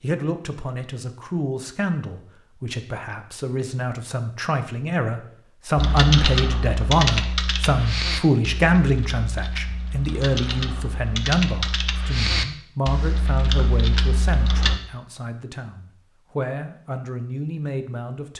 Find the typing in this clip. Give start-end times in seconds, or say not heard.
5.8-14.8.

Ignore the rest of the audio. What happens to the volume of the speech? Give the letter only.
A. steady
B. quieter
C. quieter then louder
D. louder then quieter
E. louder
D.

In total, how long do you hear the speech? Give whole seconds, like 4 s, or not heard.
18 s.